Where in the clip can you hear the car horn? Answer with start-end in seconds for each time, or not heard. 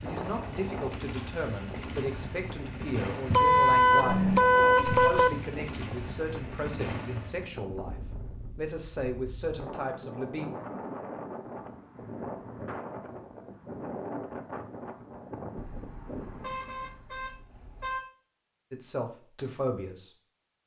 3.3-5.3, 15.6-18.0.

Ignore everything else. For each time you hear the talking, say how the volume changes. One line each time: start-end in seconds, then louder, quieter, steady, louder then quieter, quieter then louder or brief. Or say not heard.
0.0-8.0 steady
8.6-10.4 brief
18.7-20.1 brief.